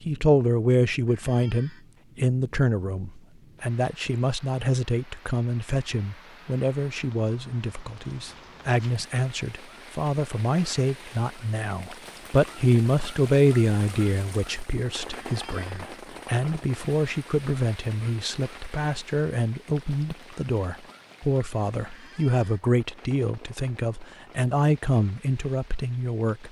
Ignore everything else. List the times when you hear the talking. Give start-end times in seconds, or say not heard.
0.0-26.4.